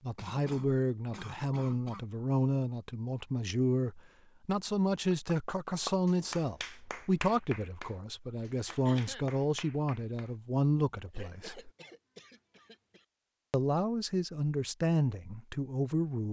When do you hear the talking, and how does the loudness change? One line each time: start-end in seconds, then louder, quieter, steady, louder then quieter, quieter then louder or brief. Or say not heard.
0.0-11.7 steady
13.5-16.2 brief.